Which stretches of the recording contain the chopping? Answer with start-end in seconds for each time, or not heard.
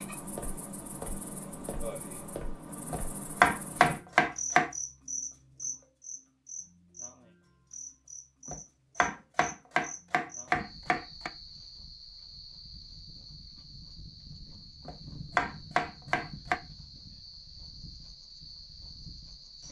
2.9-4.7, 8.4-11.3, 14.8-16.6.